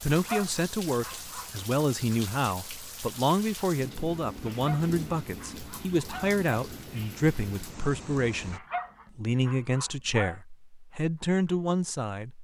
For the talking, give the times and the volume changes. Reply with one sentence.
The talking can be heard from 0.0 to 12.3 s, at a steady volume.